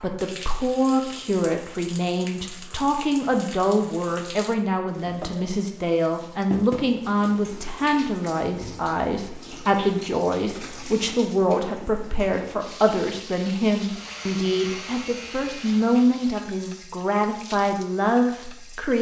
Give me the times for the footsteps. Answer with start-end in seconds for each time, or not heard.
not heard.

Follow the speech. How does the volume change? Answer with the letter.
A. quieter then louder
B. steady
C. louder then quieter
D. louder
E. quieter
B.